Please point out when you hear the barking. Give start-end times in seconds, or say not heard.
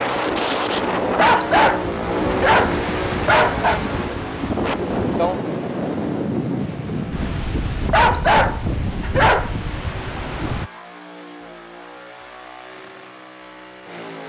1.1-3.8, 7.9-9.6.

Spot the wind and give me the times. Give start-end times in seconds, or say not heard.
0.0-10.7.